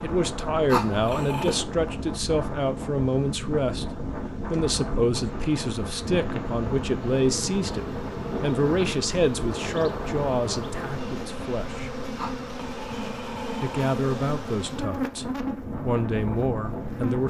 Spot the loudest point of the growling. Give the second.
1 s.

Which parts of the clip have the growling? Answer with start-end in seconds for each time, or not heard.
0.7-1.6, 12.2-13.9.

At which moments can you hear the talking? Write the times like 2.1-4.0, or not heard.
0.0-11.9, 13.6-17.2.